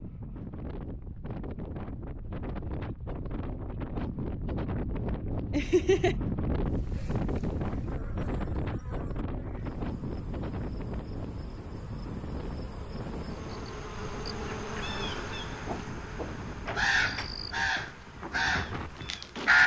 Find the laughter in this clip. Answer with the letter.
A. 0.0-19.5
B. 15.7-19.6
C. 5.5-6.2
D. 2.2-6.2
C.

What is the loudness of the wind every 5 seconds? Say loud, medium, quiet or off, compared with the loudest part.
loud, loud, medium, medium.